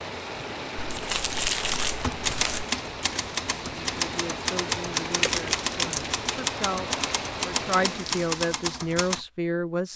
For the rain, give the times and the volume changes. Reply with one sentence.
You can hear the rain from 0.0 to 8.5 s, at a steady volume.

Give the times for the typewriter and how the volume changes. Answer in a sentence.
The typewriter can be heard from 1.9 to 9.2 s, at a steady volume.